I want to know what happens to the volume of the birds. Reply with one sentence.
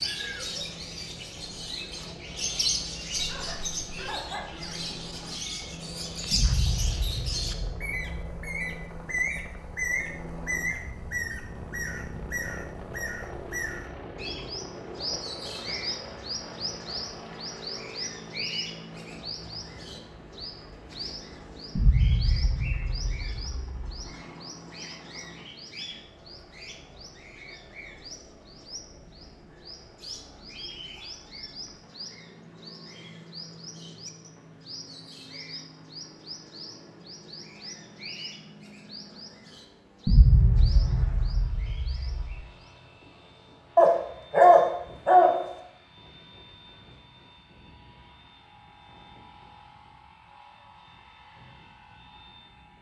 The volume of the birds goes down.